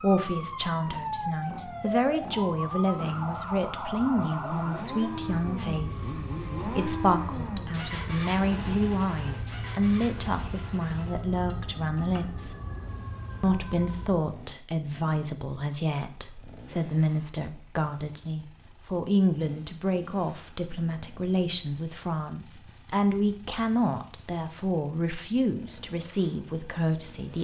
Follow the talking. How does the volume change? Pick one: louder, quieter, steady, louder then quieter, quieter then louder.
steady.